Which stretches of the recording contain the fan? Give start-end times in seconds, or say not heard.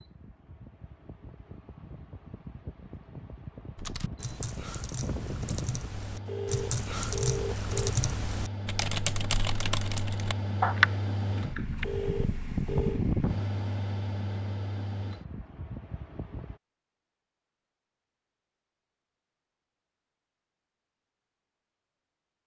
0.0-16.6.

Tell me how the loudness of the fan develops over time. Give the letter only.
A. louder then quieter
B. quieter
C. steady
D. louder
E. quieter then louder
D.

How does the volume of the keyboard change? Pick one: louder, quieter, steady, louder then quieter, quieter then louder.
louder.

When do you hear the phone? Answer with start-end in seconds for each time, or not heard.
6.2-8.0, 11.8-13.1.